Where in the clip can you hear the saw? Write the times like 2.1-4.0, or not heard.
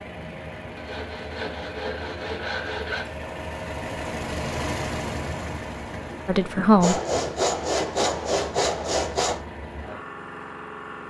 0.1-3.0, 6.8-9.4.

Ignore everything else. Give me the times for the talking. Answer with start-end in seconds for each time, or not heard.
6.2-7.0.